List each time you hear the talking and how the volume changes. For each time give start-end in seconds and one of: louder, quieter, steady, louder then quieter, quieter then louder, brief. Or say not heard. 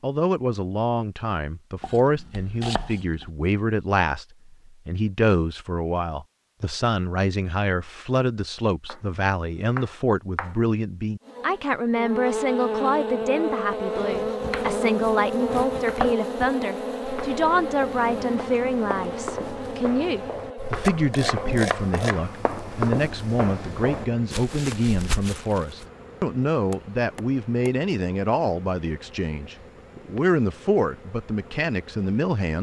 0.0-32.5 steady.